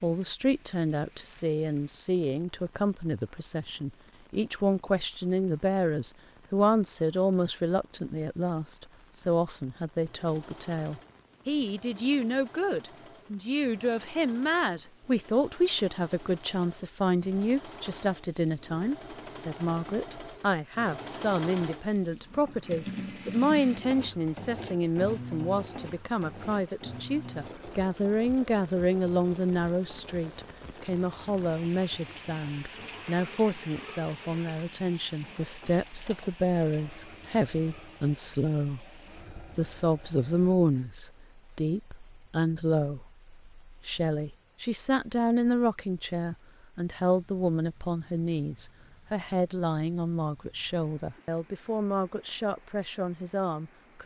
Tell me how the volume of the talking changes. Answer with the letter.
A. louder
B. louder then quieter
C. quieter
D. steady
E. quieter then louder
D.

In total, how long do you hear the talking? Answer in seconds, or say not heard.
54 s.